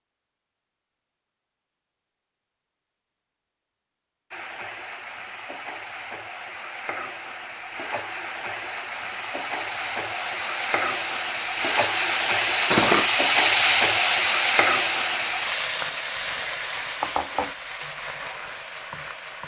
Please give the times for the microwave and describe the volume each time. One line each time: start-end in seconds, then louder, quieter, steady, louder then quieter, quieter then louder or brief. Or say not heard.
not heard.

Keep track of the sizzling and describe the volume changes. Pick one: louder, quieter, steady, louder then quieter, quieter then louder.
louder then quieter.